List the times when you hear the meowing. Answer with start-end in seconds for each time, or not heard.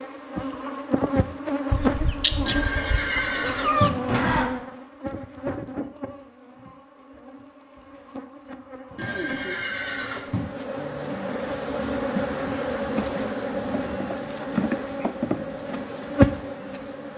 1.7-3.9.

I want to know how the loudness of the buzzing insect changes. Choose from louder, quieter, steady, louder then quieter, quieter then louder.
quieter then louder.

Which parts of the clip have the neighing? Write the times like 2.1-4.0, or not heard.
2.5-4.5, 8.9-10.4.